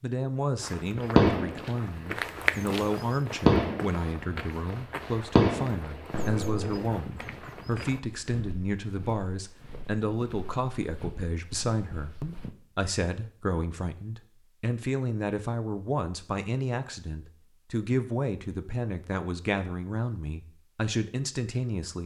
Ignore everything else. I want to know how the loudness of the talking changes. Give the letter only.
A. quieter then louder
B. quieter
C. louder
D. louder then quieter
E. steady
E.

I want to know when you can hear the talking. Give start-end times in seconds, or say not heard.
0.0-22.0.